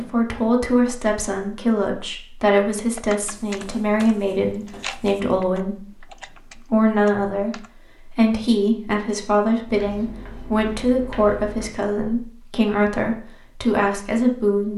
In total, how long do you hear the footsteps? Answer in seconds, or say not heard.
not heard.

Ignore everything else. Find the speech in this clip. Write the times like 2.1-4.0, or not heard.
0.0-14.7.